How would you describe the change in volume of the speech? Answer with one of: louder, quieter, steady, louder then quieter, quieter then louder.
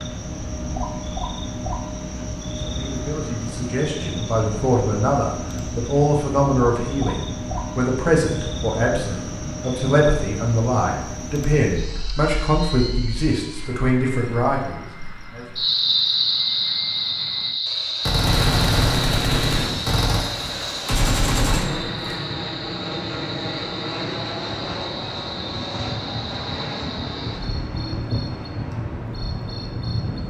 steady.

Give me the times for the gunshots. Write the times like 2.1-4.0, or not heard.
18.1-22.2.